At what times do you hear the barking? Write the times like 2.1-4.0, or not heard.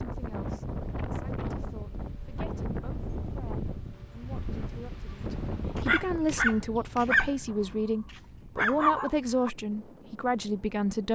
5.8-9.5.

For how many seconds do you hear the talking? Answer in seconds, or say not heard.
11 s.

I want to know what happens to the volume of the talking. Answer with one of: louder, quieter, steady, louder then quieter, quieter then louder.
louder.